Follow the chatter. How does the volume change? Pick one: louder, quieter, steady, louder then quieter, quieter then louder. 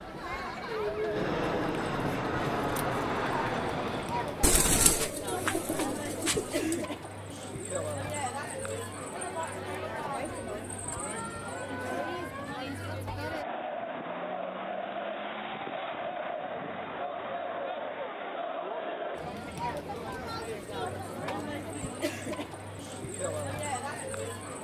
steady.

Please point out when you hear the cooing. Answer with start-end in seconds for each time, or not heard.
4.4-6.8.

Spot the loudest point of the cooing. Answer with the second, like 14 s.
5 s.